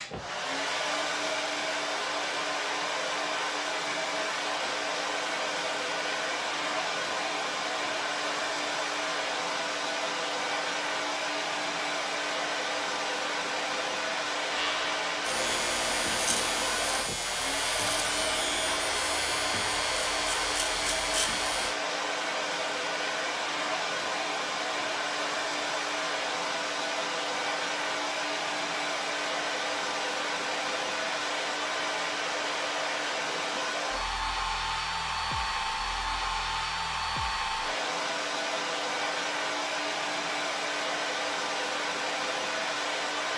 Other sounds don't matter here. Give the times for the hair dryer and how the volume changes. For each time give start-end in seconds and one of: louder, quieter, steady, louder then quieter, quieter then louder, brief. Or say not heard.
0.0-43.3 steady.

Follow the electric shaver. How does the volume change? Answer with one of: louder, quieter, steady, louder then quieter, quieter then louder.
steady.